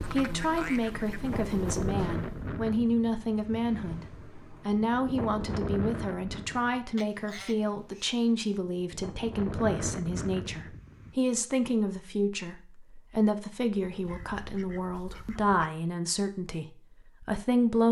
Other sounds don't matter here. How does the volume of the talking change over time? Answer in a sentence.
The volume of the talking stays about the same.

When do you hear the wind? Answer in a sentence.
The wind can be heard from 0.0 to 11.2 s.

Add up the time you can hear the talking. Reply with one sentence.
You can hear the talking for 18 seconds altogether.